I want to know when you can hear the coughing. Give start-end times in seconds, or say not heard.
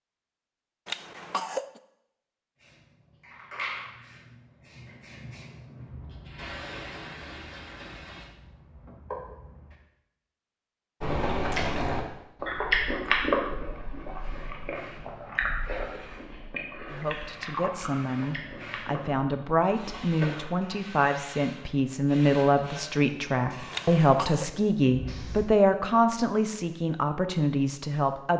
0.8-1.8, 23.7-24.5.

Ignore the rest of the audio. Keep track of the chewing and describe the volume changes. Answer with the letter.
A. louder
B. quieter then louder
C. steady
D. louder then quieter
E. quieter
E.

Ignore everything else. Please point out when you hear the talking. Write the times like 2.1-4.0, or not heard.
16.9-28.3.